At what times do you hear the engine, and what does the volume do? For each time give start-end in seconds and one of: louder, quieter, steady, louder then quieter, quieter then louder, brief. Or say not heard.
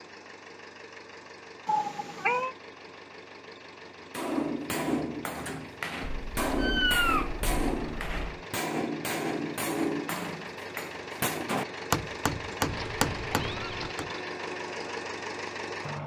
0.0-16.0 louder.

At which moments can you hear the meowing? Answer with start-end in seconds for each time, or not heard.
1.6-2.5, 6.0-8.2, 12.7-13.9.